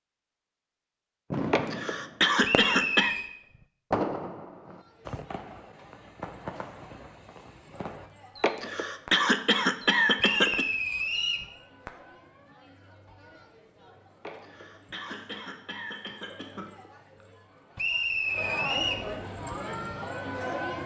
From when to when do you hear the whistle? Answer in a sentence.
The whistle can be heard from 2.4 to 3.3 s, from 10.2 to 11.4 s and from 17.8 to 19.1 s.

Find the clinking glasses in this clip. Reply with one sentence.
The clinking glasses can't be heard in this clip.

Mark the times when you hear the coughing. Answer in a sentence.
The coughing can be heard from 1.5 to 3.1 s, from 8.4 to 10.7 s and from 14.2 to 16.9 s.